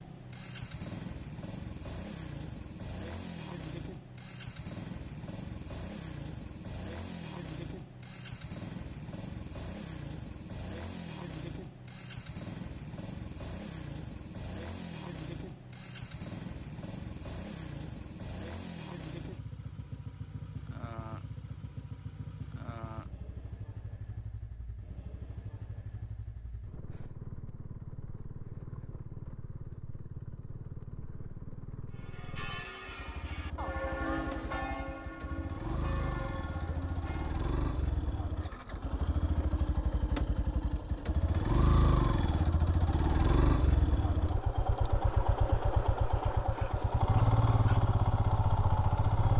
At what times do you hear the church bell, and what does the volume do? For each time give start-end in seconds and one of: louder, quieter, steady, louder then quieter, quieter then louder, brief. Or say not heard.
31.9-37.5 louder then quieter.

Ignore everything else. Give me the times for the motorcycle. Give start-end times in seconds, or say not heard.
0.0-49.3.